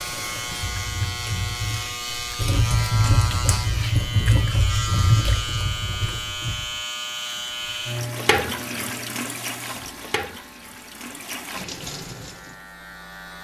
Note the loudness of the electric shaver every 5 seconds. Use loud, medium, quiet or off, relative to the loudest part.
loud, loud, quiet.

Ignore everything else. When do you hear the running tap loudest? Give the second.
5 s.